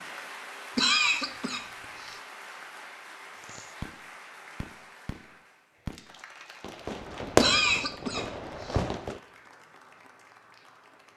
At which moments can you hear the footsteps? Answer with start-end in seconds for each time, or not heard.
not heard.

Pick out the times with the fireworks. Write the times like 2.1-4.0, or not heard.
3.4-9.2.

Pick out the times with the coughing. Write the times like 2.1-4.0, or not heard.
0.8-2.1, 7.3-8.8.